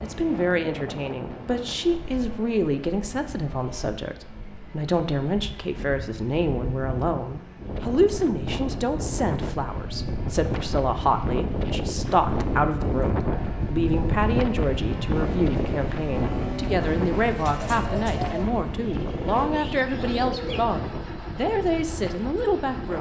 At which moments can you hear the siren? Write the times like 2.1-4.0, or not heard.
not heard.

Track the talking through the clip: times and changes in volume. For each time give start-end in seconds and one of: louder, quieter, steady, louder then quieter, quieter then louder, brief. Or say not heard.
0.0-22.9 steady.